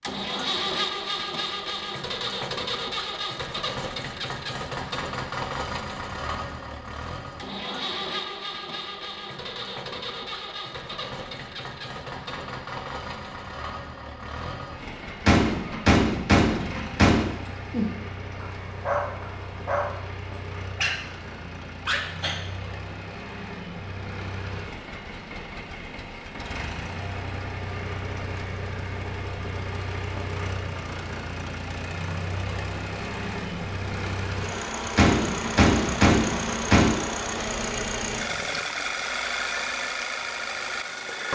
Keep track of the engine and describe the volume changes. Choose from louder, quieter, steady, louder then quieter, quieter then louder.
quieter then louder.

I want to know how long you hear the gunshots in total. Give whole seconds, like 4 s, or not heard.
4 s.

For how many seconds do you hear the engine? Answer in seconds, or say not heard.
41 s.